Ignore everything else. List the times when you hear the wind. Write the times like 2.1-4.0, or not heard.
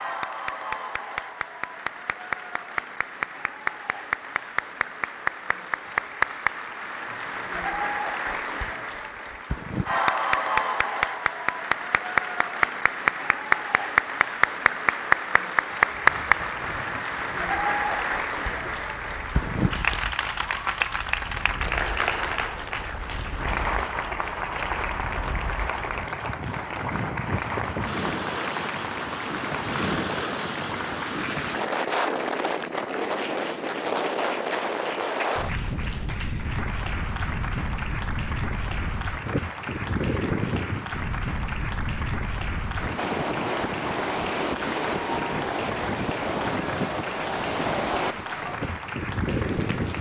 15.8-49.9.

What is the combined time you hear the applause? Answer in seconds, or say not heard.
50 s.